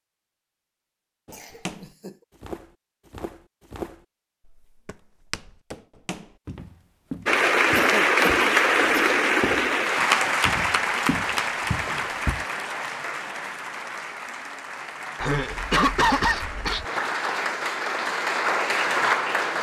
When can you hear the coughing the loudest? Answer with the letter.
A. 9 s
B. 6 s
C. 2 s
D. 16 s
D.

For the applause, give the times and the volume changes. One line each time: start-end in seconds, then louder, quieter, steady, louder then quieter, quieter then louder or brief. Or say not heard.
7.2-19.5 quieter then louder.